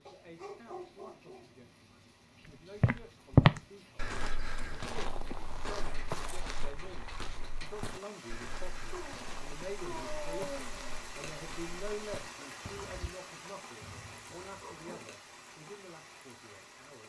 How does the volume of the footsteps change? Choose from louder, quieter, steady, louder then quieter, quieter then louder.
quieter.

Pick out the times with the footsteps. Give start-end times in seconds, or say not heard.
2.8-13.1.